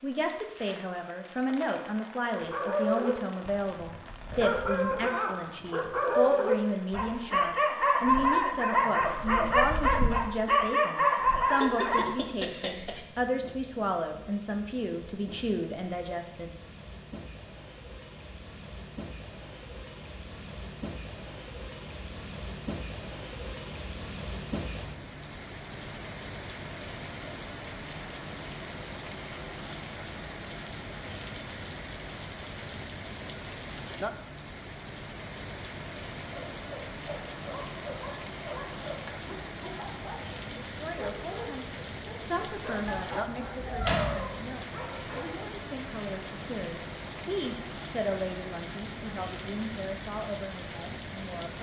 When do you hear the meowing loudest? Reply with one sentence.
The loudest moment of the meowing is at 44 seconds.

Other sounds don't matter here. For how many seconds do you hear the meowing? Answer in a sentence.
You can hear the meowing for 3 seconds altogether.